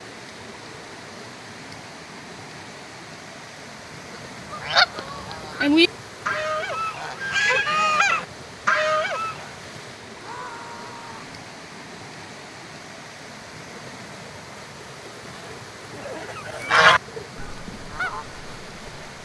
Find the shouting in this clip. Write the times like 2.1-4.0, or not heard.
10.2-11.3.